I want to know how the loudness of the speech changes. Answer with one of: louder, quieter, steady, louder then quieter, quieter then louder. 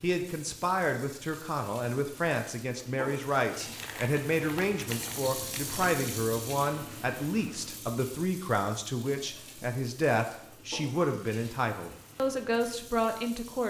steady.